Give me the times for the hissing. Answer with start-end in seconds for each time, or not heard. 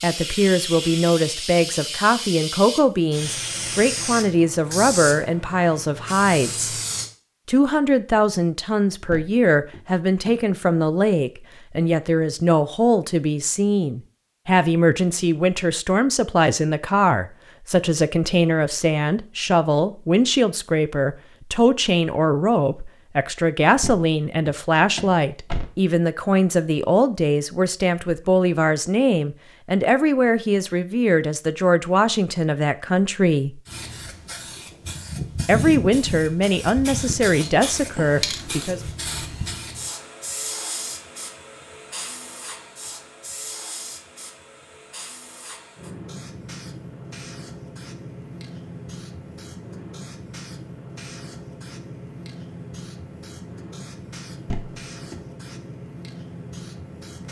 0.0-7.1, 33.6-57.2.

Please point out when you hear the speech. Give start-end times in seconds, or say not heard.
0.0-6.8, 7.5-33.6, 35.5-38.8.